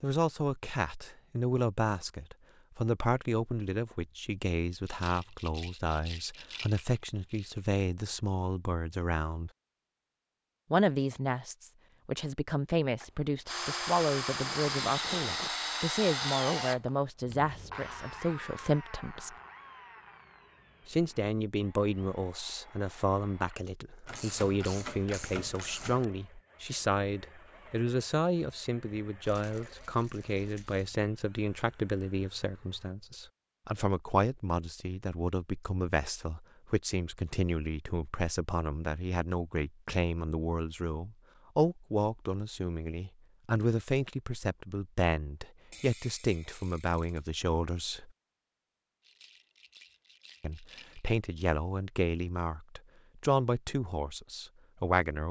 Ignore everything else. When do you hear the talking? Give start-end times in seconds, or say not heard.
0.0-9.5, 10.7-19.4, 20.9-48.1, 50.4-55.2.